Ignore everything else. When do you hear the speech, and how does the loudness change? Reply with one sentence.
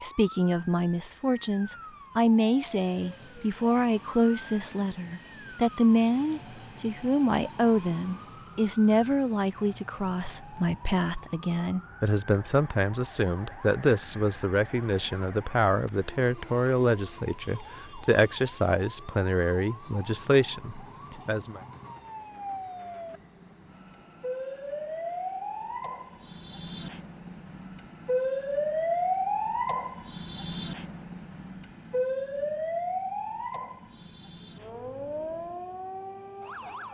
You can hear the speech from 0.0 to 21.6 s, at a steady volume.